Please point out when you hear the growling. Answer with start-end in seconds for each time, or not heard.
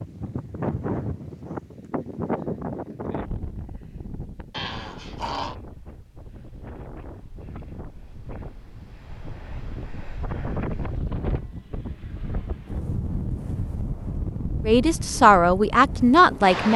4.5-5.5.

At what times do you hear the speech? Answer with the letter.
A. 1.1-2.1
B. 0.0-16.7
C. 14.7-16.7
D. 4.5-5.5
C.